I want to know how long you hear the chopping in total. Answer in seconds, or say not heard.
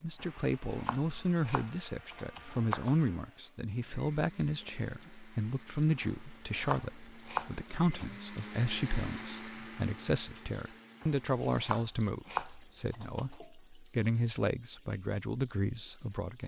7 s.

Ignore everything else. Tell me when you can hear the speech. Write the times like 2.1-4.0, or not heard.
0.0-16.4.